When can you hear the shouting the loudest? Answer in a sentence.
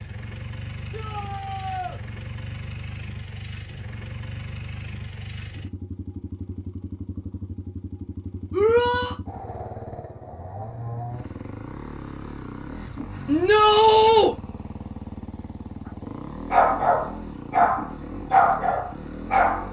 The volume of the shouting peaks at 14 seconds.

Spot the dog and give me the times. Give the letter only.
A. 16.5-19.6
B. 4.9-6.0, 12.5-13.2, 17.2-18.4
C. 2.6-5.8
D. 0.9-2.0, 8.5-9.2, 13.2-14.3
A.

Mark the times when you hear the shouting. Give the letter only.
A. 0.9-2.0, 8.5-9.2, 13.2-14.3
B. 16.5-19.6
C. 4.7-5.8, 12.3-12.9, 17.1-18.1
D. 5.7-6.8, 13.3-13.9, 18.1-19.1
A.